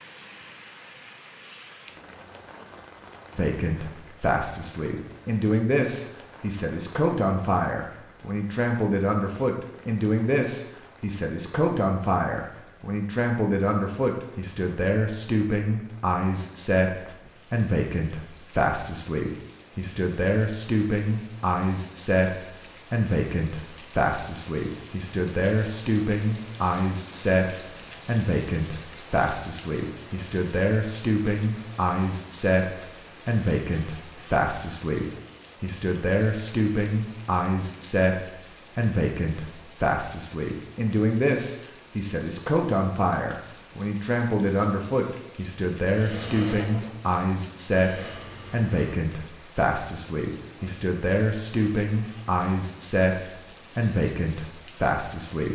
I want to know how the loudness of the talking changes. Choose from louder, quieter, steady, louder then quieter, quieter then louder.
steady.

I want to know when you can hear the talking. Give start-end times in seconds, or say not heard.
3.4-55.5.